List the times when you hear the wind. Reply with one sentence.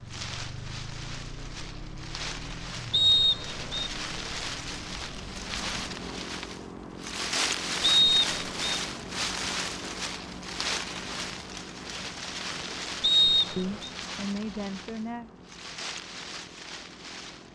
The wind can be heard from 0.0 to 17.5 s.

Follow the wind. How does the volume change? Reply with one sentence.
The loudness of the wind goes up, then down.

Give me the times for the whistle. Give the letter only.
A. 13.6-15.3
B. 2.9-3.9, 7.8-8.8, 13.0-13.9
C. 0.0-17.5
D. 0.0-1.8
B.